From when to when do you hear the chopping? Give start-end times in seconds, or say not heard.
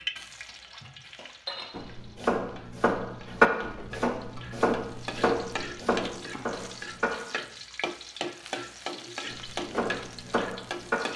1.8-7.1, 9.3-11.0.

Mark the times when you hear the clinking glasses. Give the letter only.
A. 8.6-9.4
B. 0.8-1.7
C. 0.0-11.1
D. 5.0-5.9
B.